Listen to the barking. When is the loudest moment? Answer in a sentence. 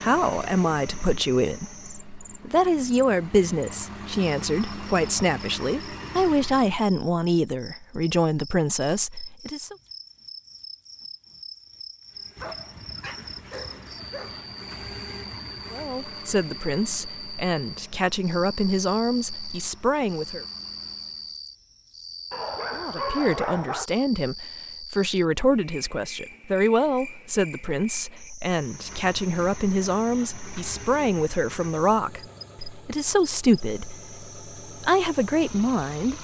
The loudest moment of the barking is at 23 seconds.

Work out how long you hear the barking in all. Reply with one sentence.
You can hear the barking for 4 seconds altogether.